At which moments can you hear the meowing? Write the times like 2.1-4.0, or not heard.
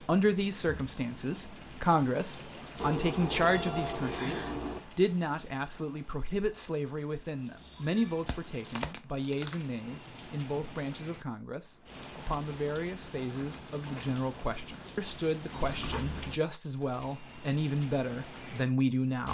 2.8-4.8, 7.5-8.2, 15.5-16.4.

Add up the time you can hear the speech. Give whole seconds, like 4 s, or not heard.
19 s.